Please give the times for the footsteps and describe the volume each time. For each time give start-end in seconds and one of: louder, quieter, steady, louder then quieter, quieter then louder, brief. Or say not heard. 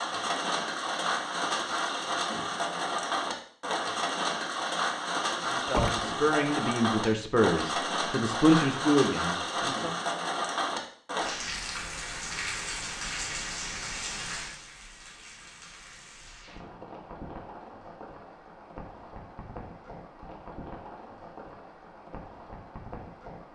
not heard.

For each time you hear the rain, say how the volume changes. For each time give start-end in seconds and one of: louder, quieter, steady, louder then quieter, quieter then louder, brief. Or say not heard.
0.0-23.4 quieter.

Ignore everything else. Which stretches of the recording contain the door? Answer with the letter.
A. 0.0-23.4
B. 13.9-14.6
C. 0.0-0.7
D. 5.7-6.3
D.